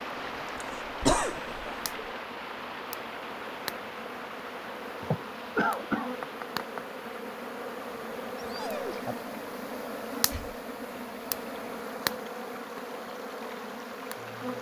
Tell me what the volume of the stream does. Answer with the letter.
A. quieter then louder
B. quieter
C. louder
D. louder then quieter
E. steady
B.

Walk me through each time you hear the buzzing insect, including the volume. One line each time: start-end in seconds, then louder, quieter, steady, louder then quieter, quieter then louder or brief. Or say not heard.
0.2-14.5 louder.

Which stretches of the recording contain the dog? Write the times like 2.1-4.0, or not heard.
8.4-9.2.